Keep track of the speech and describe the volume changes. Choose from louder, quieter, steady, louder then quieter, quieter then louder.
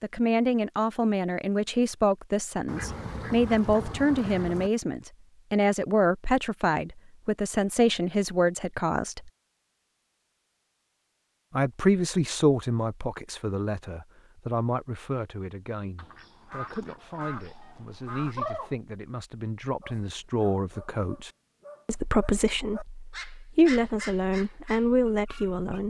quieter then louder.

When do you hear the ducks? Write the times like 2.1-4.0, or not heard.
2.6-4.7, 15.9-18.8.